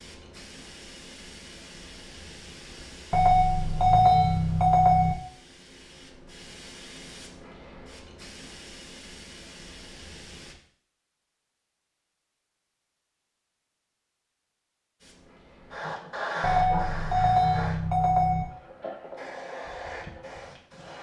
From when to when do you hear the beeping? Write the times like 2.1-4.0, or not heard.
3.1-5.2, 16.4-18.4.